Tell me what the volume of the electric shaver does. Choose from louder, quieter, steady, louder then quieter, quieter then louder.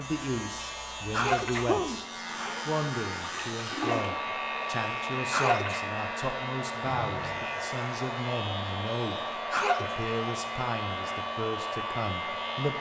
steady.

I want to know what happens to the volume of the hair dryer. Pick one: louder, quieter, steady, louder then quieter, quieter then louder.
louder.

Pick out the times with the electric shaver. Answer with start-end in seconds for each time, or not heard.
0.0-12.7.